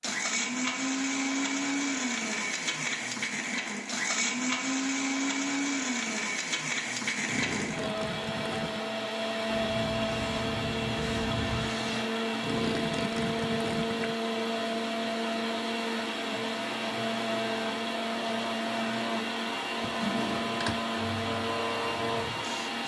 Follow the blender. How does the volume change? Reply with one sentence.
The loudness of the blender stays about the same.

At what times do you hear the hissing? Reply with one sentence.
The hissing can be heard from 9.4 to 12.1 s and from 20.9 to 22.8 s.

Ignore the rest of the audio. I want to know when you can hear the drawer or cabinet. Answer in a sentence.
The drawer or cabinet can be heard from 19.8 to 20.8 s.